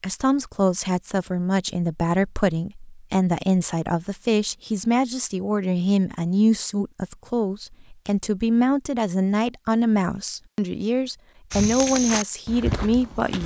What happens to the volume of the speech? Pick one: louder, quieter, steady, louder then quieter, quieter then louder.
steady.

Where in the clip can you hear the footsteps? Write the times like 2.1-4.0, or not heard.
11.5-13.4.